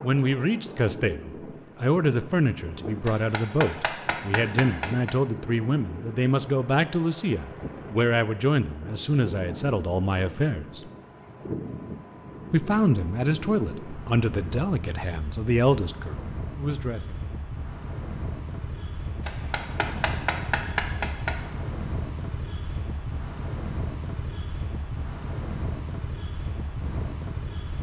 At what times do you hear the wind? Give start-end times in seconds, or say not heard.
0.0-27.7.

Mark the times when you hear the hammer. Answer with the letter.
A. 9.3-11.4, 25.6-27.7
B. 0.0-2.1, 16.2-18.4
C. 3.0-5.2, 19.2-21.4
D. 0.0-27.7
C.